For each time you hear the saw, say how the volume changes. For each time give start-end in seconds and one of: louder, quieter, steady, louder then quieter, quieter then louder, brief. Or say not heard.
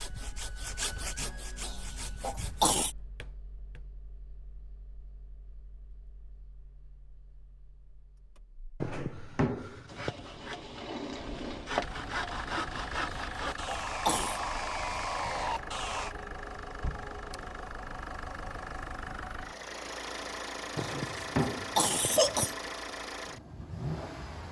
0.0-2.8 brief
9.9-16.1 louder.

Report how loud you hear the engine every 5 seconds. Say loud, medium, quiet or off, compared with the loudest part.
quiet, quiet, loud, loud, loud.